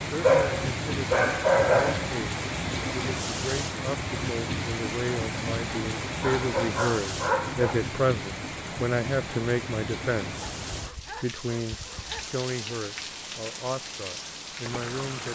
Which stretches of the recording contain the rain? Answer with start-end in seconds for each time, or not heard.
0.0-15.3.